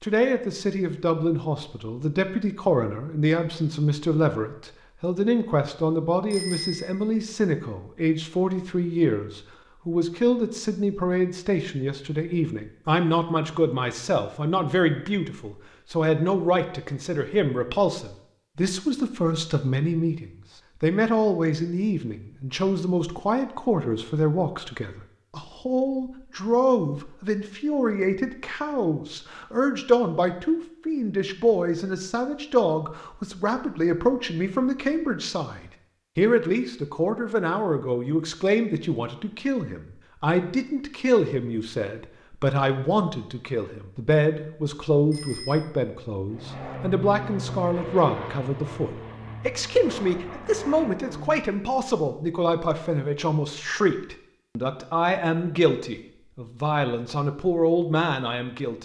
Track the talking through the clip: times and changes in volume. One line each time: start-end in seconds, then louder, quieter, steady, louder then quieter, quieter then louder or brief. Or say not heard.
0.0-58.8 steady.